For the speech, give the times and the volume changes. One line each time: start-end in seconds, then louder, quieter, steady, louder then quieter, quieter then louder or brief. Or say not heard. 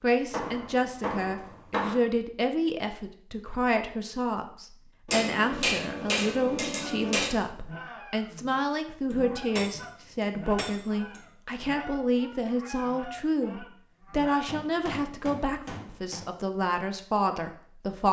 0.0-18.0 steady.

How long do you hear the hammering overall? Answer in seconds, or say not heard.
8 s.